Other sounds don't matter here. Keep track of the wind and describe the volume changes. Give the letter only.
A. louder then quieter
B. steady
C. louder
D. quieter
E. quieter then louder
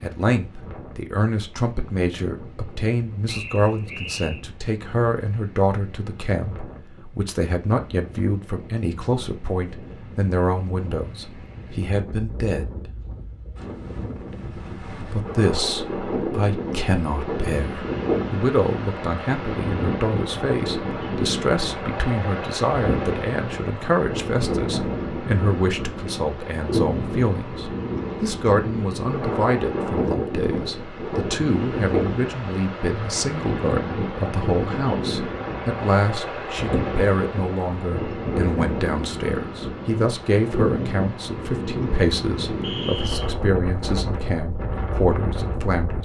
C.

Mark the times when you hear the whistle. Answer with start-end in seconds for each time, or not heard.
3.2-4.4, 42.6-43.3.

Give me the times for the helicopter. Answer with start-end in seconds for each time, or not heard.
not heard.